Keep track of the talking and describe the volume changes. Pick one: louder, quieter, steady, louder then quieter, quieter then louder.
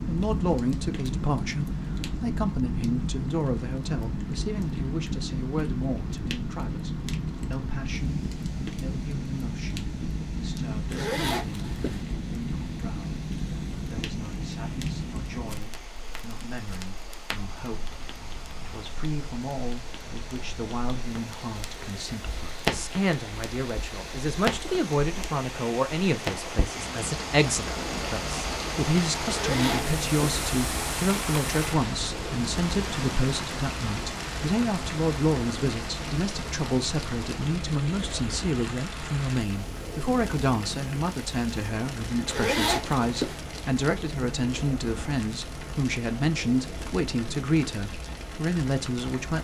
quieter then louder.